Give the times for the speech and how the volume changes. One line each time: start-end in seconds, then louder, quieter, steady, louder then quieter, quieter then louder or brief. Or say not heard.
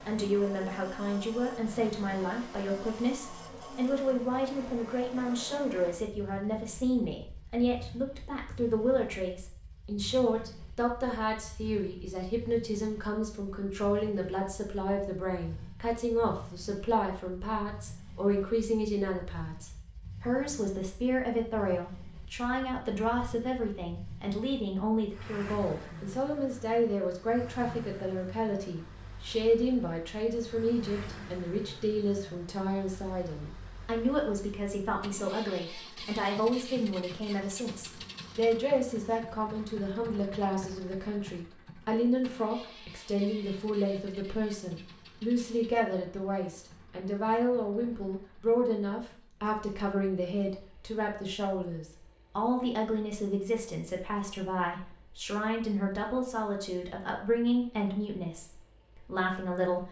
0.1-59.8 steady.